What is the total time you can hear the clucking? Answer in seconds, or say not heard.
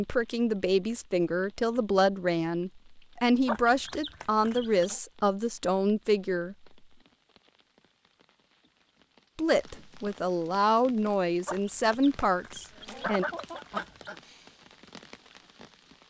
4 s.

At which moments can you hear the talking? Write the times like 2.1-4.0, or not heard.
0.0-6.5, 9.3-13.2.